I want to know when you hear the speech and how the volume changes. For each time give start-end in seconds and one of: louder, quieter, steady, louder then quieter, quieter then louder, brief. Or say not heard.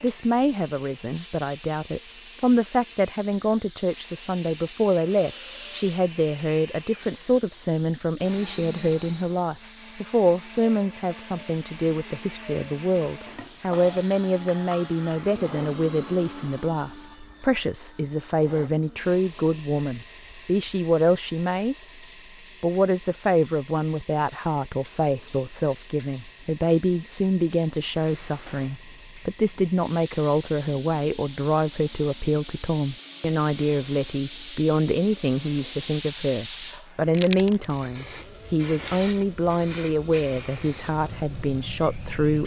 0.0-21.8 steady
22.6-42.4 steady.